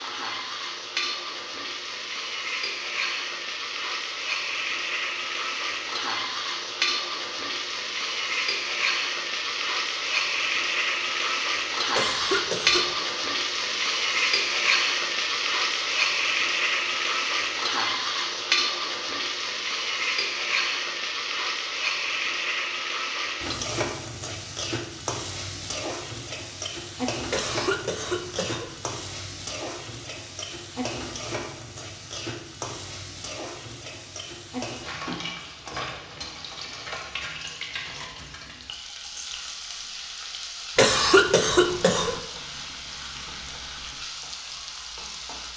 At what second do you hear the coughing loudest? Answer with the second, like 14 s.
41 s.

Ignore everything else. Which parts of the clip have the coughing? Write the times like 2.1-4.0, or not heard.
11.9-13.1, 27.3-28.8, 40.8-42.2.